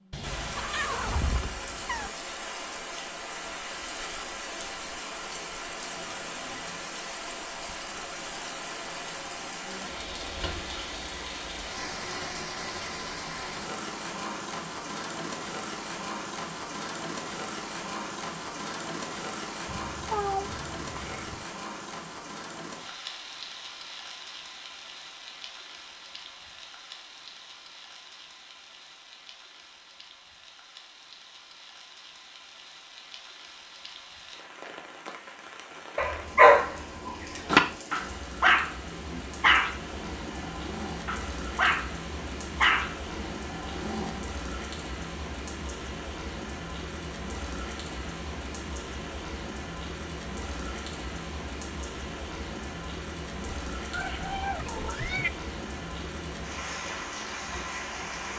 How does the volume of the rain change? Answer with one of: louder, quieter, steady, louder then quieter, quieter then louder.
quieter then louder.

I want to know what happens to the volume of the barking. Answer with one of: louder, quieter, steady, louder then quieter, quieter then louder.
quieter.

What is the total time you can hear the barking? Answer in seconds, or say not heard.
8 s.